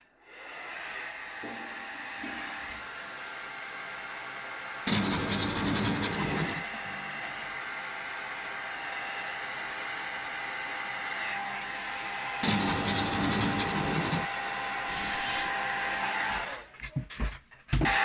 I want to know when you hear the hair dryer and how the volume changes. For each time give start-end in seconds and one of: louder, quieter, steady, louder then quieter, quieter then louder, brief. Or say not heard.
0.0-18.0 louder.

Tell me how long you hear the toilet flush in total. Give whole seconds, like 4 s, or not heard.
4 s.